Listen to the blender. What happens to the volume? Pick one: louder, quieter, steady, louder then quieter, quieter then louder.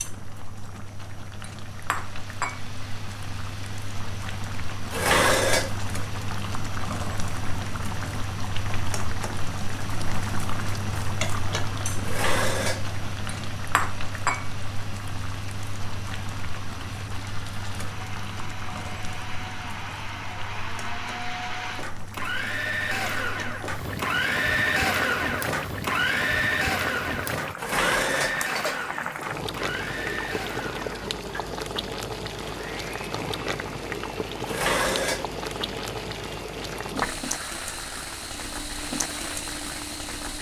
louder then quieter.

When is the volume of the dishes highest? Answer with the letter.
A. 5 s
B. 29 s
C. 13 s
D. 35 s
A.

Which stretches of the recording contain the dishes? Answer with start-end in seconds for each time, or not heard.
4.9-5.8, 12.0-12.9, 27.6-28.4, 34.5-35.3.